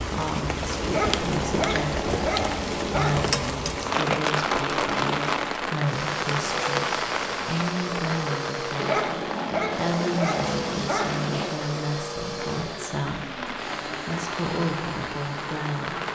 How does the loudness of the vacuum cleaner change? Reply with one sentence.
The volume of the vacuum cleaner stays about the same.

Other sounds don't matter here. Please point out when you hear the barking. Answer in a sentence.
You can hear the barking from 0.8 to 3.4 s and from 8.8 to 11.7 s.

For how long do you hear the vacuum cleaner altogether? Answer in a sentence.
The vacuum cleaner can be heard for 16 seconds in total.